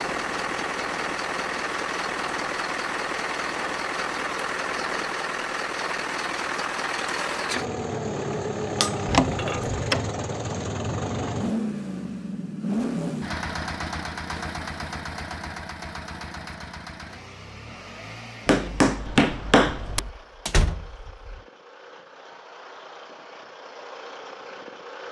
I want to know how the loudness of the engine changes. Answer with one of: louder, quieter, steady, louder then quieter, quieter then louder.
quieter.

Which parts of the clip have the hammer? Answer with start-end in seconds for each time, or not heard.
8.8-9.6, 18.4-20.1.